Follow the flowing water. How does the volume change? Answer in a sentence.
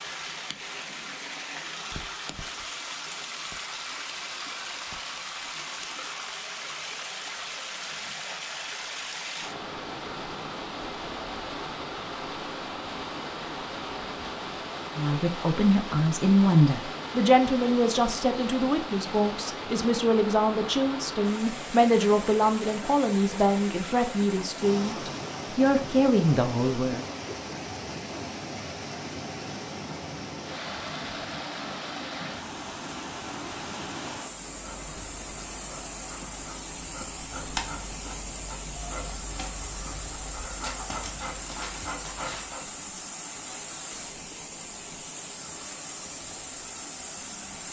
The loudness of the flowing water stays about the same.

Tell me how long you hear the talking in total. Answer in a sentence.
The talking can be heard for 12 seconds in total.